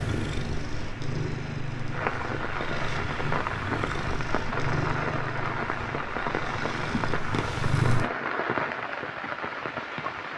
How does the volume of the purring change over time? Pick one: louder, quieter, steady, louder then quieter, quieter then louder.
steady.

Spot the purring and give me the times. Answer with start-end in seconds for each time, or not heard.
0.0-8.1.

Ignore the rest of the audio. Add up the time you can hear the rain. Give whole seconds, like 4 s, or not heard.
10 s.